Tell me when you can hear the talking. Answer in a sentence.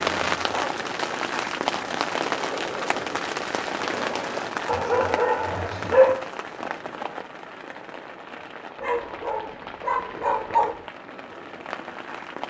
You can't hear the talking here.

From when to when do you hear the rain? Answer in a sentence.
You can hear the rain from 0.0 to 12.4 s.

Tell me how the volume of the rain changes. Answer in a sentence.
The loudness of the rain goes down.